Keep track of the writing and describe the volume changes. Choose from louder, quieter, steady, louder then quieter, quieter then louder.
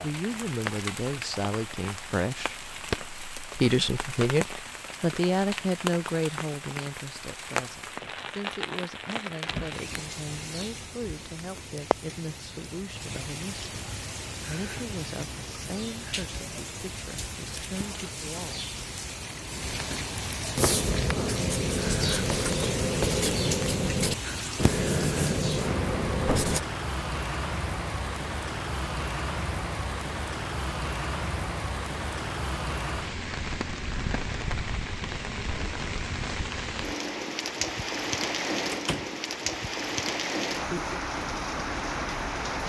steady.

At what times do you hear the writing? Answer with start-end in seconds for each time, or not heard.
20.6-26.6.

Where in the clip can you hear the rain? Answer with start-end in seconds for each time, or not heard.
0.0-42.6.